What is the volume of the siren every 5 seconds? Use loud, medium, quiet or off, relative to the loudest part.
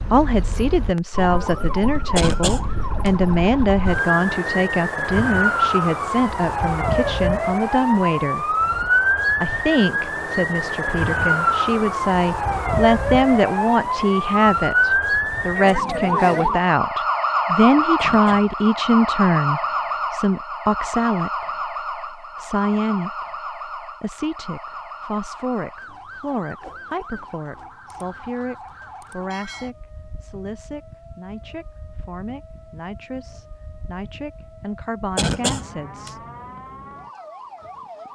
medium, loud, loud, loud, medium, quiet, quiet, quiet.